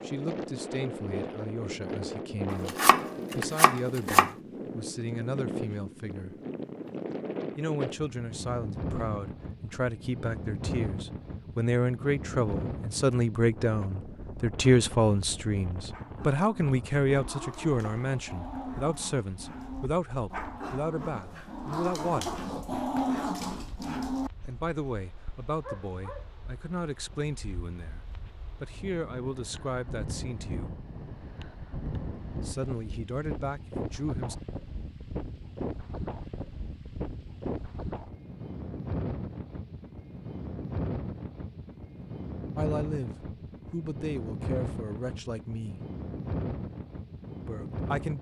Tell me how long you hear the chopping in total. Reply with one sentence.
The chopping can be heard for 2 seconds in total.